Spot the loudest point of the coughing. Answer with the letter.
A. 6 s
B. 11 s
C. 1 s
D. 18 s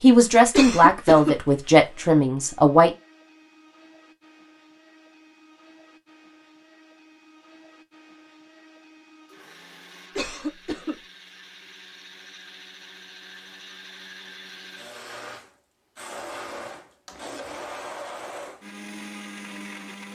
C.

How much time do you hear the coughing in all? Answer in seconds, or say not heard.
2 s.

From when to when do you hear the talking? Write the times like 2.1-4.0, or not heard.
0.0-2.9.